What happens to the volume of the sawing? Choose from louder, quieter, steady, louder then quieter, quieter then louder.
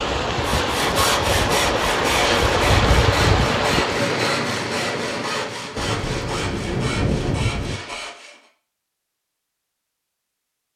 quieter.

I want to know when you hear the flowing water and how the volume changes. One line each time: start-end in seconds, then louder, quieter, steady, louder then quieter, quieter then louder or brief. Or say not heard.
0.0-8.2 quieter.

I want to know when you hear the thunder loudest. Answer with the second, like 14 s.
7 s.